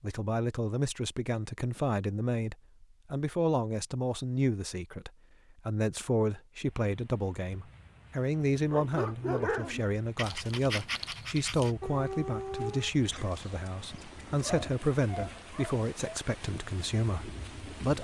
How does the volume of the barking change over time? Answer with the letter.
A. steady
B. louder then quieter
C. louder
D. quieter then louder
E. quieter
D.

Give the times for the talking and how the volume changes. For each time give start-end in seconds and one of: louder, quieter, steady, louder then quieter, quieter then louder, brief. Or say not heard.
0.0-17.9 steady.